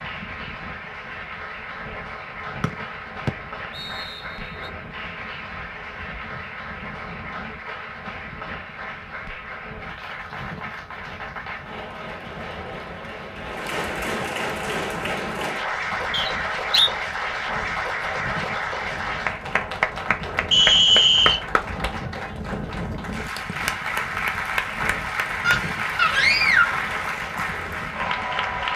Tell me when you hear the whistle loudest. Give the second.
21 s.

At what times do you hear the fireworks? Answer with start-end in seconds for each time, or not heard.
not heard.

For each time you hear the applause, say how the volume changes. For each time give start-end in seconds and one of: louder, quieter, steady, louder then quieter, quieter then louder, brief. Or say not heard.
0.0-28.7 louder.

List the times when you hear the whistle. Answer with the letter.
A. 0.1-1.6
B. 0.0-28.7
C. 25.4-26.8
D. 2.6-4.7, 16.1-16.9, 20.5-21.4
D.